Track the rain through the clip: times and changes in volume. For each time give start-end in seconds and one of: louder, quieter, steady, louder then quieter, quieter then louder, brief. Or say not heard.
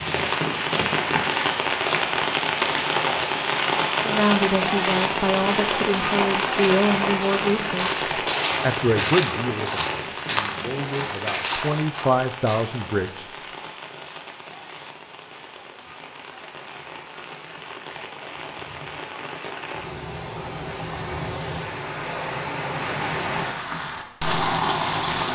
0.0-25.3 quieter then louder.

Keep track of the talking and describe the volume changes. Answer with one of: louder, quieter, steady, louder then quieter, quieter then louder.
quieter then louder.